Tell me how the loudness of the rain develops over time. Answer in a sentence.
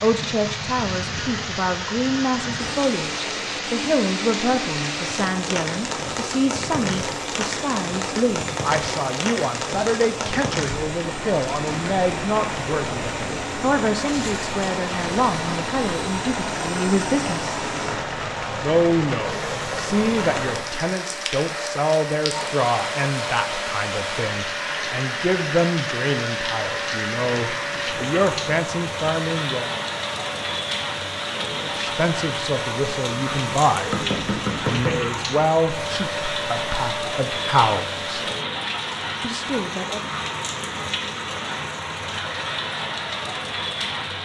The volume of the rain stays about the same.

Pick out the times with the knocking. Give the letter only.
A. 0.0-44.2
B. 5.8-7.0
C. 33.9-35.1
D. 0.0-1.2
C.